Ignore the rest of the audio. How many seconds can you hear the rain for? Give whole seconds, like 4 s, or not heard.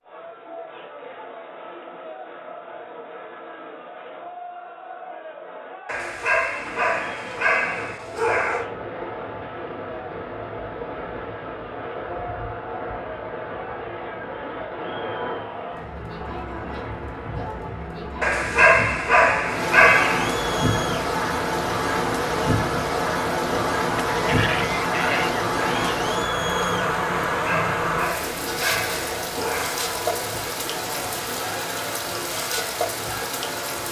27 s.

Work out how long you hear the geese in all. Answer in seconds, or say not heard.
2 s.